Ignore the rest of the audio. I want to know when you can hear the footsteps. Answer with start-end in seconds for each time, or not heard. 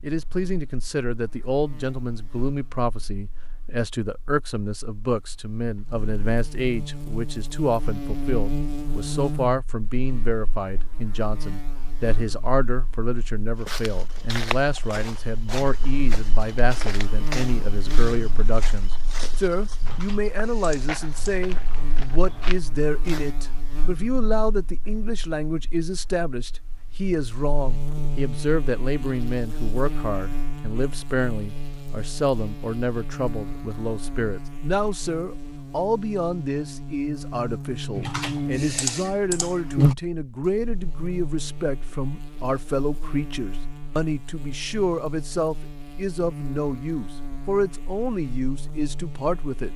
13.6-23.4.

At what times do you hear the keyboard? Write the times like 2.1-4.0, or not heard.
19.8-21.8, 38.0-40.0.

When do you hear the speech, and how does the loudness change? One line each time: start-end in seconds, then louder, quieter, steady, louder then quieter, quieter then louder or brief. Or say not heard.
0.0-49.7 steady.